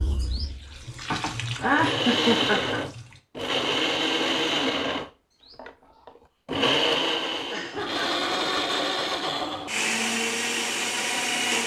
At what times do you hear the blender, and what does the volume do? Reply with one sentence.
You can hear the blender from 0.0 to 11.6 s, at a steady volume.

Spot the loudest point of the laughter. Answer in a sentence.
The volume of the laughter peaks at 2 seconds.